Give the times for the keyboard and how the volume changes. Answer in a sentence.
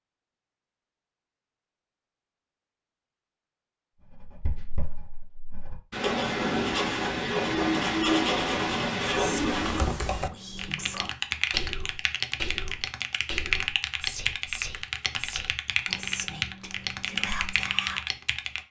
The keyboard can be heard from 9.5 to 18.6 s, at a steady volume.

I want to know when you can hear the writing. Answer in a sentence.
You can hear the writing from 4.1 to 9.9 s.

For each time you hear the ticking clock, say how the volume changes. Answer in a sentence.
The ticking clock can't be heard in this clip.